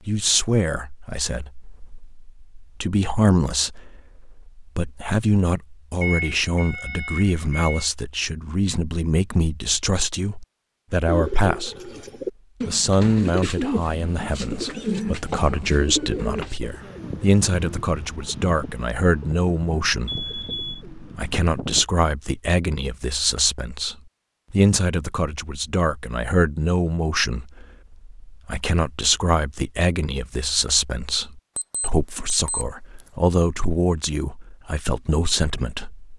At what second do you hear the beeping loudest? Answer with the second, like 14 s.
6 s.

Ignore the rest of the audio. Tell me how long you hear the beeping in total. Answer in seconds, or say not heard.
4 s.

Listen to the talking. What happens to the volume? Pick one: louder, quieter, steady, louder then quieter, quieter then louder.
steady.